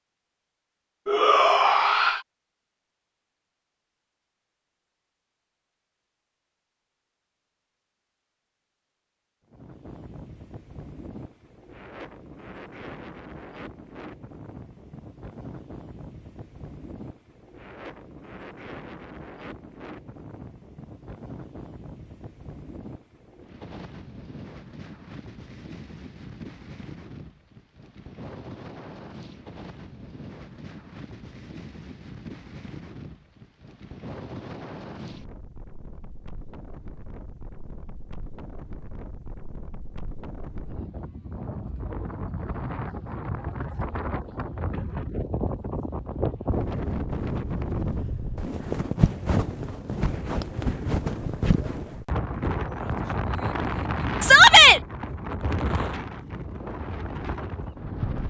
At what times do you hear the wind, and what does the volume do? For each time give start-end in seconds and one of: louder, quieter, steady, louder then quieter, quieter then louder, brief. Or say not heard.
9.5-58.2 louder.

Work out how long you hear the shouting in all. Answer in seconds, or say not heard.
2 s.